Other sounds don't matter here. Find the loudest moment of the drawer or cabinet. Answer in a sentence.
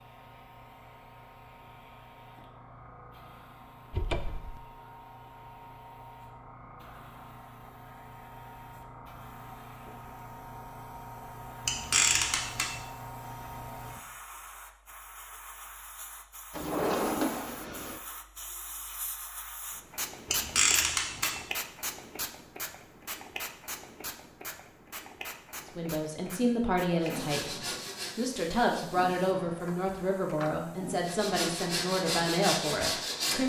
The volume of the drawer or cabinet peaks at 17 seconds.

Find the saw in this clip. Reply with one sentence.
You can hear the saw from 27.0 to 29.1 s and from 31.1 to 33.4 s.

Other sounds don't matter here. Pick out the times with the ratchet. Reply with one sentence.
You can hear the ratchet from 11.7 to 12.8 s and from 20.2 to 21.4 s.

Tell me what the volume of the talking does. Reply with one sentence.
The loudness of the talking stays about the same.